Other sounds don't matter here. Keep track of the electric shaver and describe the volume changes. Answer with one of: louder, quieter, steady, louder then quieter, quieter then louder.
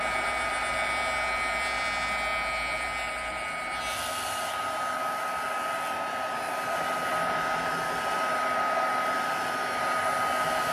quieter.